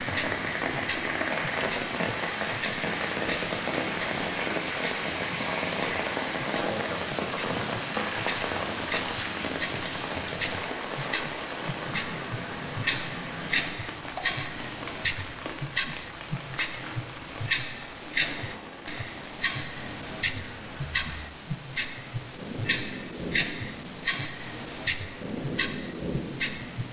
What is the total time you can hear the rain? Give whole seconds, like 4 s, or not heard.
27 s.